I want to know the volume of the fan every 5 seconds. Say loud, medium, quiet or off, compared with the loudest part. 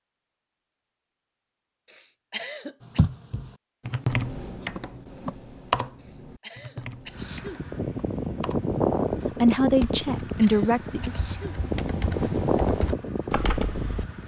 off, loud, loud.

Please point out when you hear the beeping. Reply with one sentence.
The beeping can't be heard in this clip.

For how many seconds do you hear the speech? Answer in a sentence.
You can hear the speech for 2 seconds altogether.